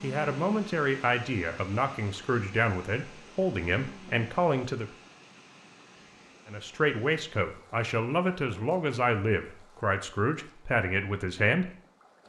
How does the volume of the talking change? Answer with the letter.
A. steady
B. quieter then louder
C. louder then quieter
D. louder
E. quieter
A.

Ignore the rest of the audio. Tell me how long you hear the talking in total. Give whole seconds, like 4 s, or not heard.
10 s.